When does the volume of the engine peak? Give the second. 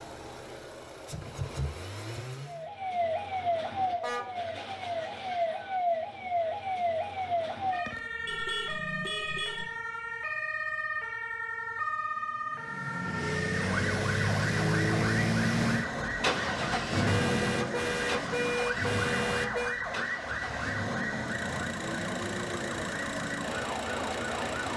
15 s.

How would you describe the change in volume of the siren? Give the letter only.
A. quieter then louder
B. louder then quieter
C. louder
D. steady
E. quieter
D.